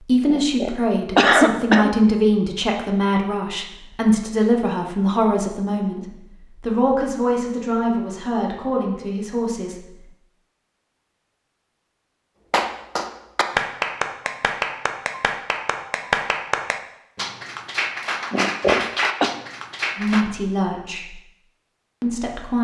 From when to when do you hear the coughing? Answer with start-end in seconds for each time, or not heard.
0.2-1.9, 18.3-19.3.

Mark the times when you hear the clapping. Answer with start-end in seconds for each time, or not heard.
12.5-20.2.